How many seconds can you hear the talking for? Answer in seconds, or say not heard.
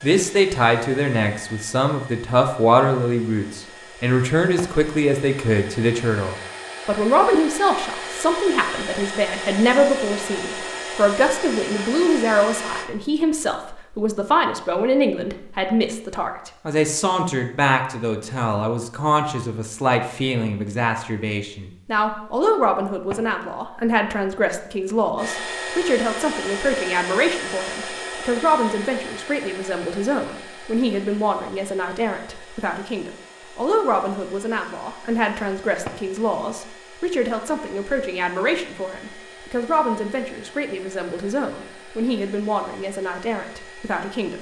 44 s.